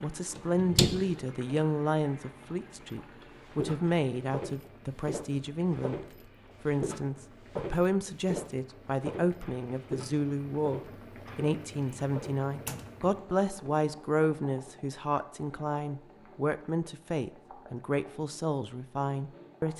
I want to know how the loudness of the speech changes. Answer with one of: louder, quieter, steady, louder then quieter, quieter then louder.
steady.